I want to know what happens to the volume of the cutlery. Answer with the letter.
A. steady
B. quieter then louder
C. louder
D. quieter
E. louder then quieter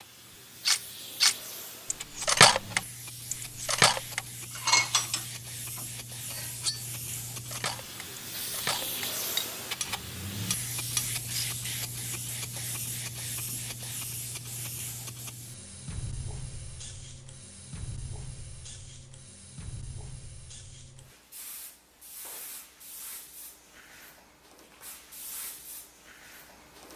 B.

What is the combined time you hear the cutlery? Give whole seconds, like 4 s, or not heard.
11 s.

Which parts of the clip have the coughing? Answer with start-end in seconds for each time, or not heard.
not heard.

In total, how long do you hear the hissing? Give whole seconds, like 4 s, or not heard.
27 s.